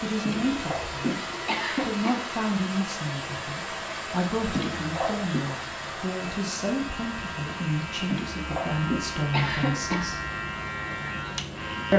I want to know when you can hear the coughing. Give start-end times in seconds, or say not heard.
0.2-2.2, 4.5-5.4, 8.1-10.1.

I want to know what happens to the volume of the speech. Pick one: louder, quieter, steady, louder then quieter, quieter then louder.
steady.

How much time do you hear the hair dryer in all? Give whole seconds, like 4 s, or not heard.
12 s.